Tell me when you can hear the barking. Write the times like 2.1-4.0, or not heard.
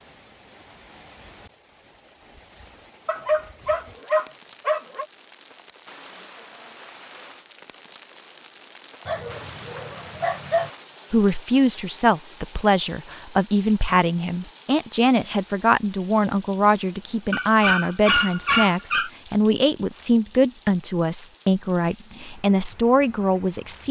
3.0-5.0, 9.1-10.7, 17.3-19.1.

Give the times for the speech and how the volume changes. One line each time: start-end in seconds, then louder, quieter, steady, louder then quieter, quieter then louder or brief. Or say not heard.
11.1-23.8 steady.